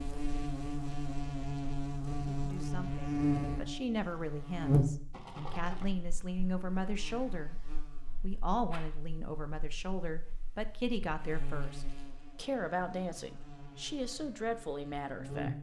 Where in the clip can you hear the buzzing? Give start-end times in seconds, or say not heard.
0.0-15.5.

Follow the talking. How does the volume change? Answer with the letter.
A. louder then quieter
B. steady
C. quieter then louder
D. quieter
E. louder
B.